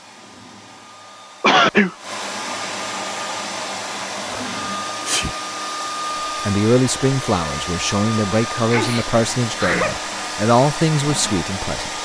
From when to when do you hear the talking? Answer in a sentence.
You can hear the talking from 6.5 to 12.0 s.